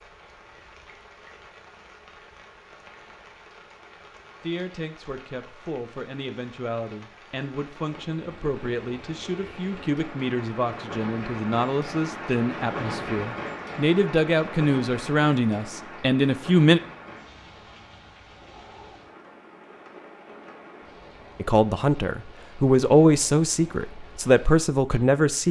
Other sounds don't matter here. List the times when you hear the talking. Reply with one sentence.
The talking can be heard from 4.4 to 16.8 s and from 21.4 to 25.4 s.